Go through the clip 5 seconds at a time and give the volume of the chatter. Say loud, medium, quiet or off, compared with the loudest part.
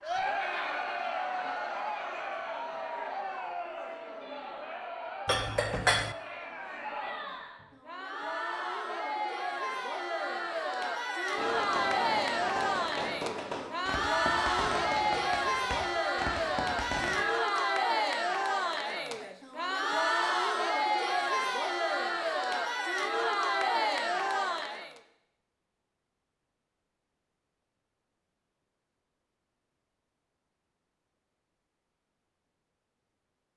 medium, medium, loud, loud, loud, off, off.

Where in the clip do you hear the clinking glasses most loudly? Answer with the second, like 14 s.
6 s.